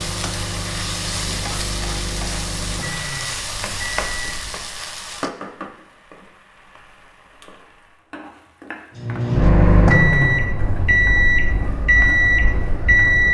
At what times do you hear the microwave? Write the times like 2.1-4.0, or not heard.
0.0-4.8, 8.9-13.2.